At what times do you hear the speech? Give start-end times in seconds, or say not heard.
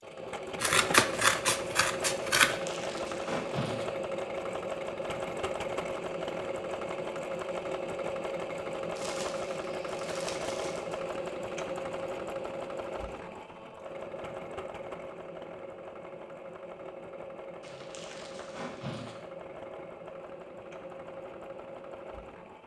not heard.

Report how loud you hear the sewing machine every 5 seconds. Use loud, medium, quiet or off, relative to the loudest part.
loud, loud, loud, medium, medium.